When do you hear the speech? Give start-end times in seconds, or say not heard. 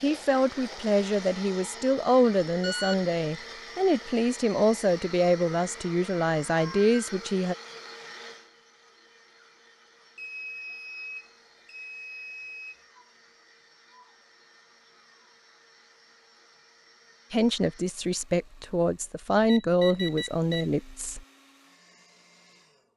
0.0-7.5, 17.3-21.2.